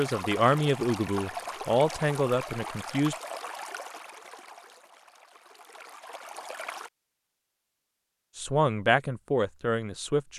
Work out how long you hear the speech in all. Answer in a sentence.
You can hear the speech for 5 seconds altogether.